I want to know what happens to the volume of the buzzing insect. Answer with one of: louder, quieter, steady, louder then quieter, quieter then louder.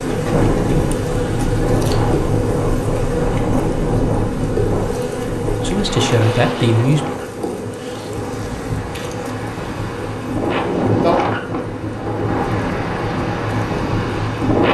quieter.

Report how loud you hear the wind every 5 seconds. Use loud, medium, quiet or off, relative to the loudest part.
loud, medium, loud.